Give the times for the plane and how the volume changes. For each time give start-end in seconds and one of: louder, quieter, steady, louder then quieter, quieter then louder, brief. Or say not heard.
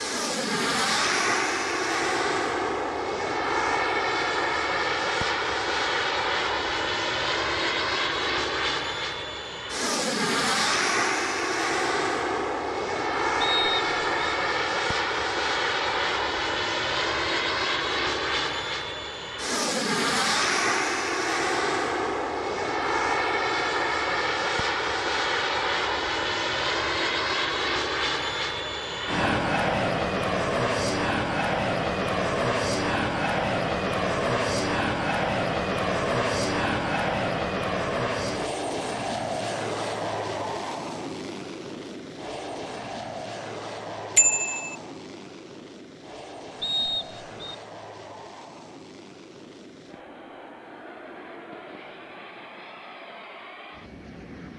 0.0-54.5 quieter.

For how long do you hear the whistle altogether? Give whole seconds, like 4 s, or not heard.
2 s.